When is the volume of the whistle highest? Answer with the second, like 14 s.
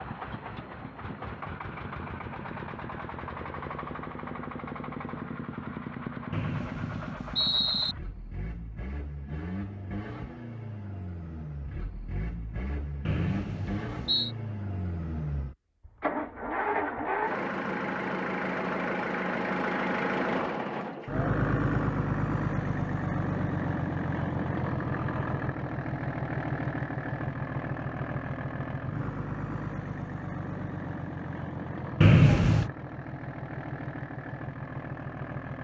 32 s.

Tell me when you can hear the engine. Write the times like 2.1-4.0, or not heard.
0.0-35.6.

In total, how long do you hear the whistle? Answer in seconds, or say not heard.
4 s.